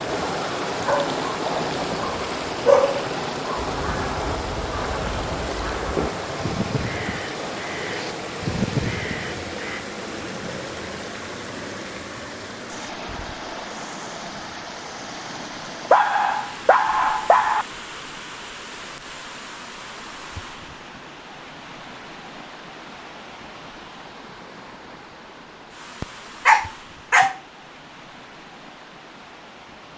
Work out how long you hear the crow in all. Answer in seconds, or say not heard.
6 s.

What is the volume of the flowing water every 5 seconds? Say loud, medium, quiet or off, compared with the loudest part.
loud, loud, medium, medium, quiet, quiet.